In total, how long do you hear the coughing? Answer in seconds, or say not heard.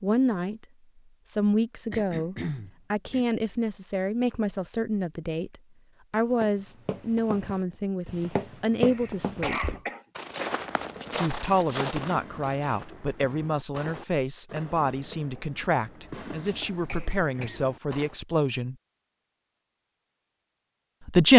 4 s.